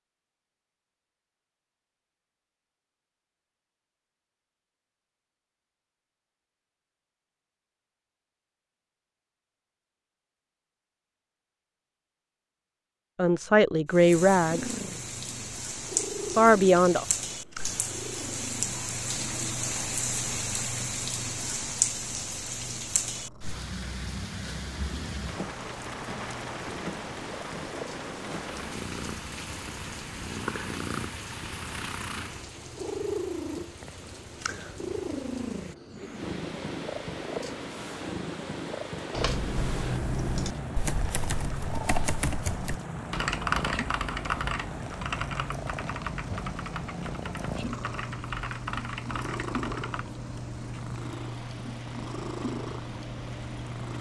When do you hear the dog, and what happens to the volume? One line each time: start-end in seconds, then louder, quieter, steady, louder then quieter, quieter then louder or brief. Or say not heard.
not heard.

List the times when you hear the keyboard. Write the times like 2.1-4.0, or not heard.
39.1-50.0.